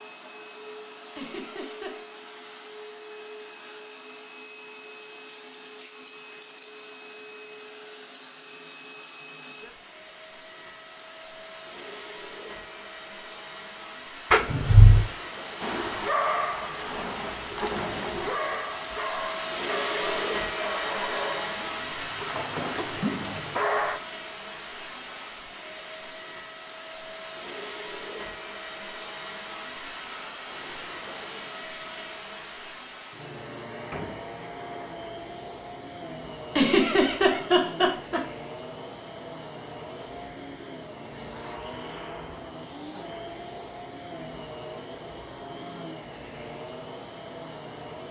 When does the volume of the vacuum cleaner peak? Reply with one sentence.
The loudest moment of the vacuum cleaner is at 20 seconds.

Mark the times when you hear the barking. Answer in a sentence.
You can hear the barking from 15.6 to 24.0 s.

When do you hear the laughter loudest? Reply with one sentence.
The loudest moment of the laughter is at 37 seconds.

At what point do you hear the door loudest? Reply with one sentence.
The volume of the door peaks at 15 seconds.